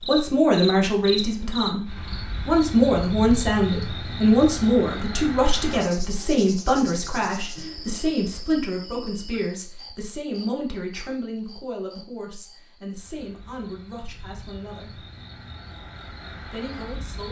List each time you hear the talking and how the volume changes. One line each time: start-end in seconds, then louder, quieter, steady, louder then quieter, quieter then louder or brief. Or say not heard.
0.0-15.1 quieter
16.4-17.2 brief.